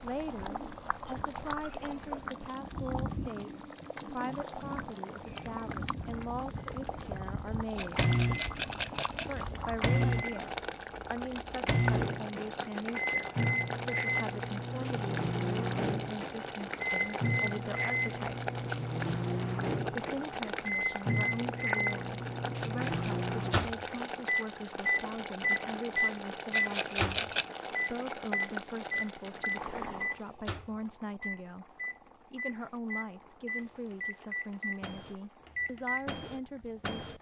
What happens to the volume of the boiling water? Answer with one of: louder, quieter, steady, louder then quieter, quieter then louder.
quieter.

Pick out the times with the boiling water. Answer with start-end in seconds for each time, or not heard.
0.0-37.1.